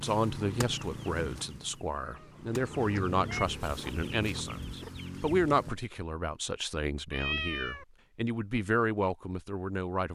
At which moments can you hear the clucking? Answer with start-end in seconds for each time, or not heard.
0.0-5.8.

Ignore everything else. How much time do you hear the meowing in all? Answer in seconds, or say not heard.
2 s.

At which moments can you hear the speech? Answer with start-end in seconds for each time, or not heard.
0.0-10.1.